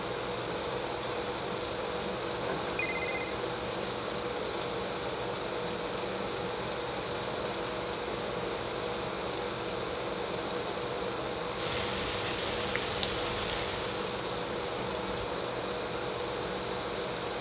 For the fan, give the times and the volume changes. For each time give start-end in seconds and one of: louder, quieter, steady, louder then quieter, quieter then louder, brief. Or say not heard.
0.0-17.3 steady.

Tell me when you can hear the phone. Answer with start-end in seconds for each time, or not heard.
2.4-3.3.